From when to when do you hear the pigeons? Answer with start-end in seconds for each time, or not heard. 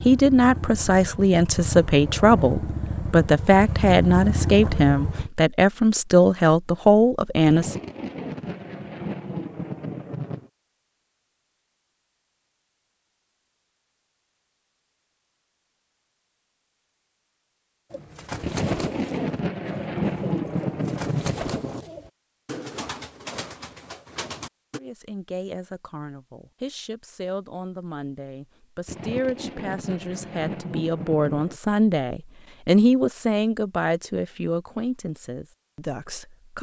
17.9-24.8.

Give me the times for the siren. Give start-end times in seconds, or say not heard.
not heard.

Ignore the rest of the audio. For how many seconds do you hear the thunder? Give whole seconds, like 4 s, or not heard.
9 s.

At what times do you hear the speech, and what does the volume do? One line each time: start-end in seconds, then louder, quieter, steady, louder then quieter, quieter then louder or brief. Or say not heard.
0.1-7.8 steady
24.8-36.5 louder then quieter.